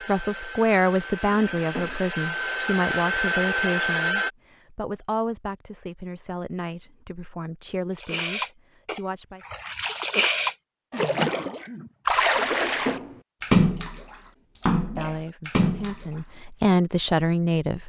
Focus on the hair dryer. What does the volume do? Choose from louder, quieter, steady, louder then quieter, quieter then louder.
louder.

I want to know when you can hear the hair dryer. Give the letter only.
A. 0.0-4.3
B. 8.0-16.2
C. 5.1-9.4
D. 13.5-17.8
A.